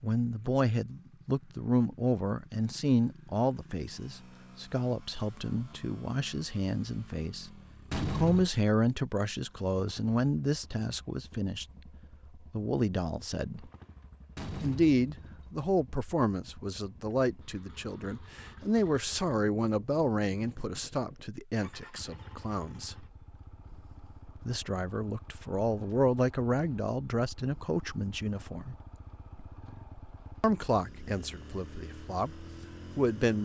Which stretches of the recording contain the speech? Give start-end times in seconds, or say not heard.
0.0-11.7, 12.3-13.7, 14.6-23.1, 24.4-28.8, 30.4-33.3.